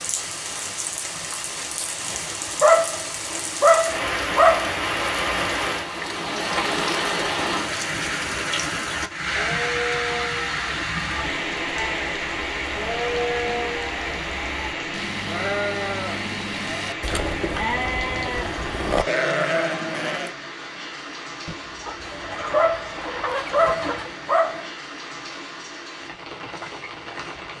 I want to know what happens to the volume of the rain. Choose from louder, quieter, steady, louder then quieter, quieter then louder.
quieter.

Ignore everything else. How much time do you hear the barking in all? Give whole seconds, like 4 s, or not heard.
5 s.